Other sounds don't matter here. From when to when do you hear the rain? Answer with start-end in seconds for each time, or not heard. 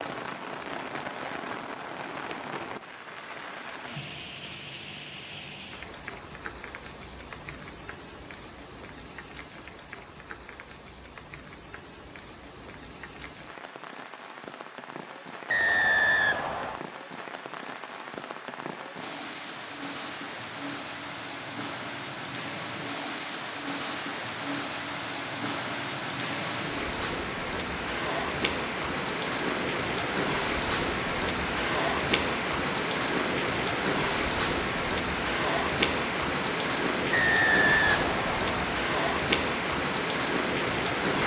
0.0-41.2.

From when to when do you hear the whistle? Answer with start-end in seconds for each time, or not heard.
15.5-16.8, 37.1-38.8.